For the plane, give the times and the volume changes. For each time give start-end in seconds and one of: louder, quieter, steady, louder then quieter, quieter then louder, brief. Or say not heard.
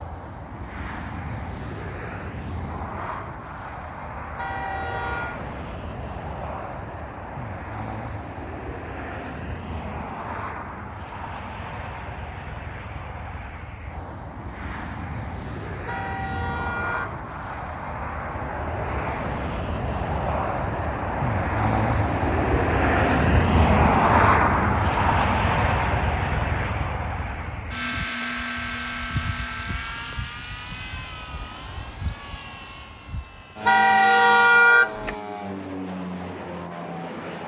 0.0-37.4 louder then quieter.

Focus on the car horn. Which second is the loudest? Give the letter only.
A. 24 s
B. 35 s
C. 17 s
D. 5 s
B.